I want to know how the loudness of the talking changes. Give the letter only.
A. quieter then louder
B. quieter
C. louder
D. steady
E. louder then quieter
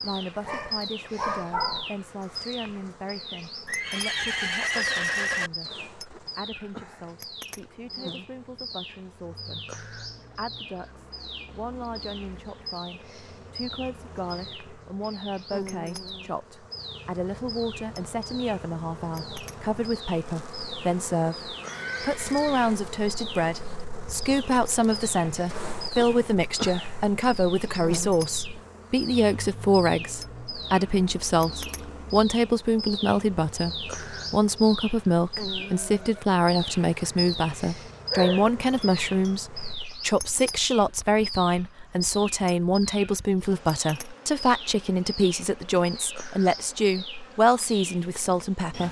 C.